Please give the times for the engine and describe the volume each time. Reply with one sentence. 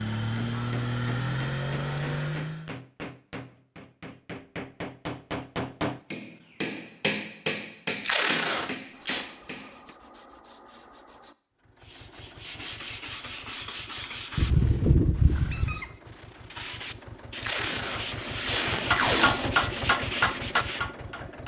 You can hear the engine briefly from 0.0 to 2.7 s; and from 11.6 to 21.4 s, getting louder.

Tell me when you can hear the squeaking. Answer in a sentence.
You can hear the squeaking from 14.3 to 15.8 s.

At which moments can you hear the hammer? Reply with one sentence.
You can hear the hammer from 0.3 to 9.9 s and from 18.7 to 21.4 s.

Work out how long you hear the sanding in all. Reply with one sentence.
You can hear the sanding for 12 seconds altogether.